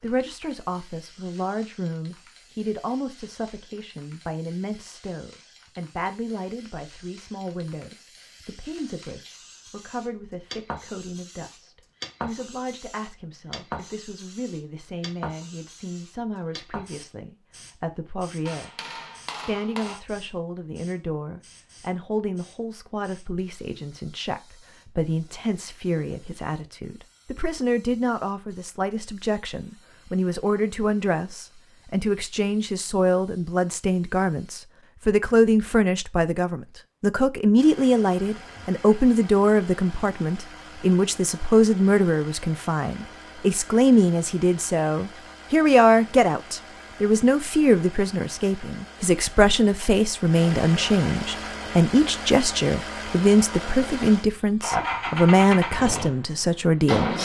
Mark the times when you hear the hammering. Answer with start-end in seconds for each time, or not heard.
18.4-20.0.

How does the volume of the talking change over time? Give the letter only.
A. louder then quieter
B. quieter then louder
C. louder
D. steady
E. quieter
C.